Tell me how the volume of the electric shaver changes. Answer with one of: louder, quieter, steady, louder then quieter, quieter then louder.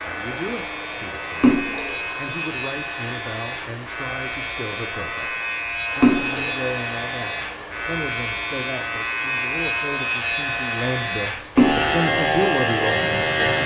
louder.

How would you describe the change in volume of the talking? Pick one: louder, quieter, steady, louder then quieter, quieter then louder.
louder.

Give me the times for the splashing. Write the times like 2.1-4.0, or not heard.
1.4-1.9, 6.0-6.5, 11.6-12.1.